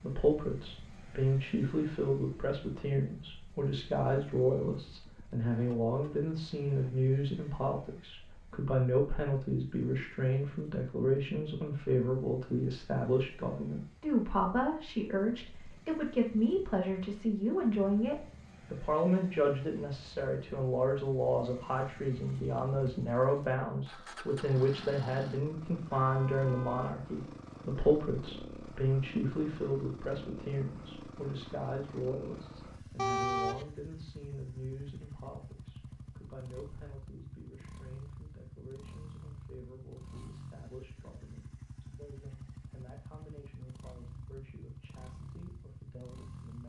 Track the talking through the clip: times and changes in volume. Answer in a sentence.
The talking can be heard from 0.0 to 46.6 s, getting quieter.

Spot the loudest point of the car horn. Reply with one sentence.
The loudest moment of the car horn is at 33 seconds.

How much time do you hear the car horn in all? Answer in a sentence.
You can hear the car horn for 3 seconds altogether.